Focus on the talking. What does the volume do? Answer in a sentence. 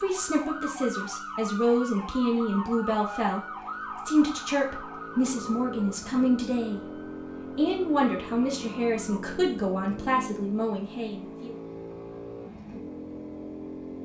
The loudness of the talking stays about the same.